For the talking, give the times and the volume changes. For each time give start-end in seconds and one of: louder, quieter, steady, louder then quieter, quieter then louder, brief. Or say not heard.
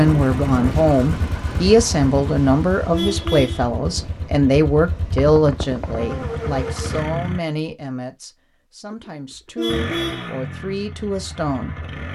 0.0-11.9 quieter.